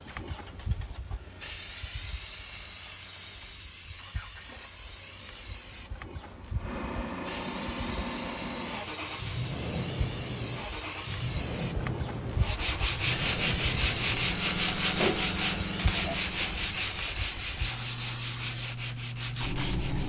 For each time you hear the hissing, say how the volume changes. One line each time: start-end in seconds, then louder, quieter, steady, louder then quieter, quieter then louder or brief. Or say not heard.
0.0-20.0 louder.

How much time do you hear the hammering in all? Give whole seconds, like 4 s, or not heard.
not heard.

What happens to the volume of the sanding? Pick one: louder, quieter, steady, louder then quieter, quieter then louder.
quieter.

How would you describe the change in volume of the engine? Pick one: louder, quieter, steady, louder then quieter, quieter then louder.
louder.